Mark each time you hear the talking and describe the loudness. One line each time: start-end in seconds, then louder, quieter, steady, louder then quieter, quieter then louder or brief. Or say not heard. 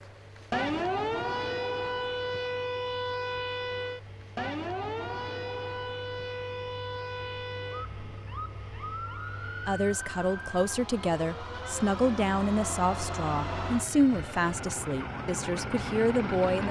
9.7-16.6 steady.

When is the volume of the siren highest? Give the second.
1 s.